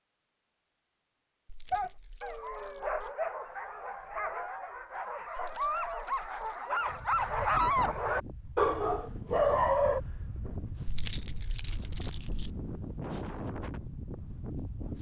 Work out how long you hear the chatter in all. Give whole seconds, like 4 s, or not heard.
not heard.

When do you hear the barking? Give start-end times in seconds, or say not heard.
1.7-10.0.